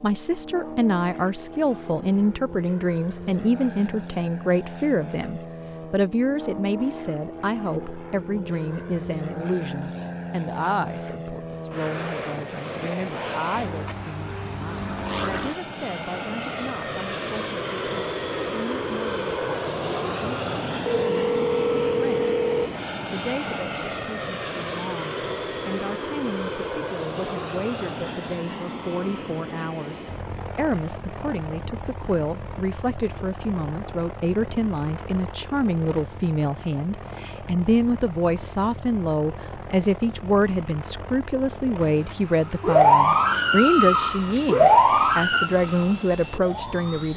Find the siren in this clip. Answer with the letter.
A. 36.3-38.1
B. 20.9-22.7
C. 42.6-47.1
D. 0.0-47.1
C.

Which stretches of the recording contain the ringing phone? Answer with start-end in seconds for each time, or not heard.
20.9-22.7.